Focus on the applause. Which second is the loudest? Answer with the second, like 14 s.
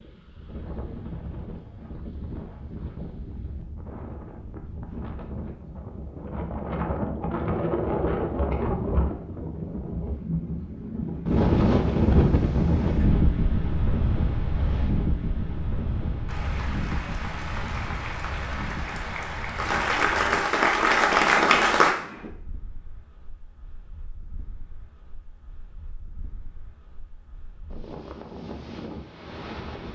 21 s.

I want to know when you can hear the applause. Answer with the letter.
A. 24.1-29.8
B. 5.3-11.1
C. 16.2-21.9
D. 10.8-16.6
C.